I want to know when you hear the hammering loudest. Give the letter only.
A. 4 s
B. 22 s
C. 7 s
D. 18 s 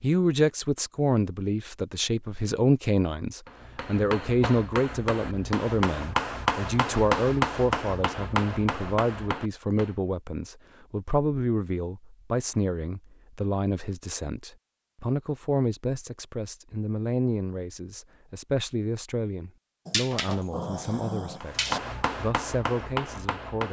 C.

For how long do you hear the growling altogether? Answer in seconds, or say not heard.
2 s.